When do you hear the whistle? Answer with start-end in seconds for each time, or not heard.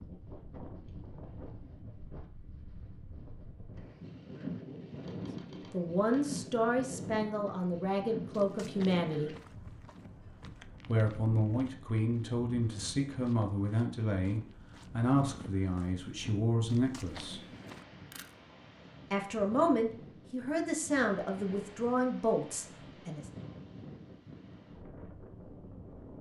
not heard.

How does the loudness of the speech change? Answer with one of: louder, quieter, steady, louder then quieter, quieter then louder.
steady.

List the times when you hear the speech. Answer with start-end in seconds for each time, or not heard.
5.7-9.3, 10.8-17.4, 19.1-23.2.